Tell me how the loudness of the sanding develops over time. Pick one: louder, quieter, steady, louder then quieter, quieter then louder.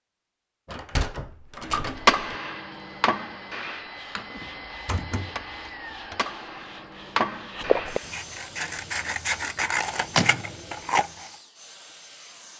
louder.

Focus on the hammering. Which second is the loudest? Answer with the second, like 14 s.
2 s.